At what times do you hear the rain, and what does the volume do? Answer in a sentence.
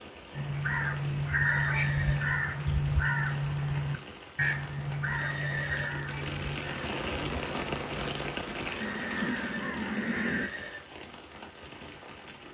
The rain can be heard from 0.0 to 12.4 s, getting louder then quieter.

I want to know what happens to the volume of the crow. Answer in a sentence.
The loudness of the crow goes down, then up.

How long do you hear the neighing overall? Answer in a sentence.
You can hear the neighing for 4 seconds altogether.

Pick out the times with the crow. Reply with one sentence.
You can hear the crow from 0.3 to 10.5 s.